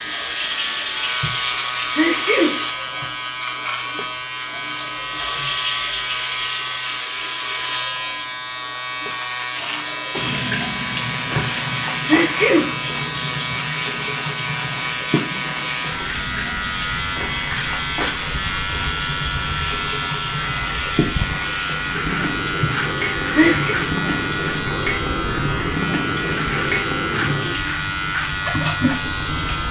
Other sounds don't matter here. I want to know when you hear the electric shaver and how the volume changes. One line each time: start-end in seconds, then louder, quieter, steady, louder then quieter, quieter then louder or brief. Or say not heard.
0.0-29.6 steady.